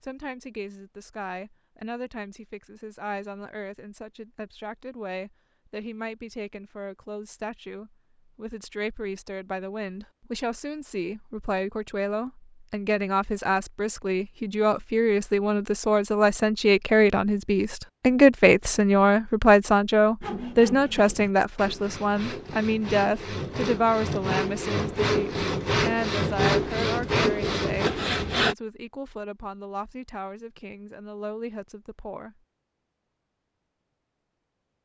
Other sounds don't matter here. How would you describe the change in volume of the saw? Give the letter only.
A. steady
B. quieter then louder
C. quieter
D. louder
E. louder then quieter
D.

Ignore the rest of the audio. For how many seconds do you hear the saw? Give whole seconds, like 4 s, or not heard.
8 s.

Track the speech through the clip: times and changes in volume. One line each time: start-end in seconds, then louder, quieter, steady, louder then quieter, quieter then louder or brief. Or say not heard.
0.0-32.4 louder then quieter.